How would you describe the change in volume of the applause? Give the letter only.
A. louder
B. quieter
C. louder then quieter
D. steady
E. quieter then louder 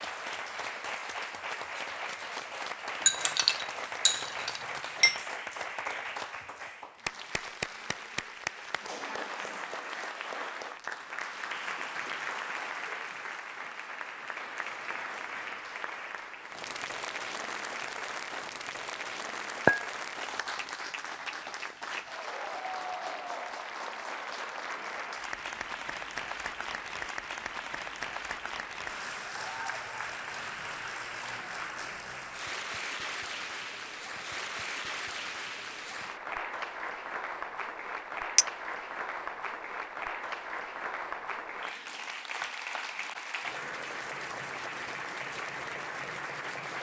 D.